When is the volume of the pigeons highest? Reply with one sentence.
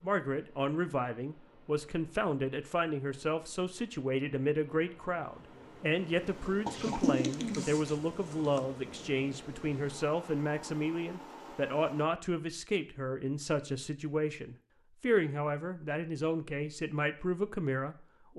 The loudest moment of the pigeons is at 7 seconds.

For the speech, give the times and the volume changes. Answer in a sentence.
You can hear the speech from 0.0 to 18.3 s, at a steady volume.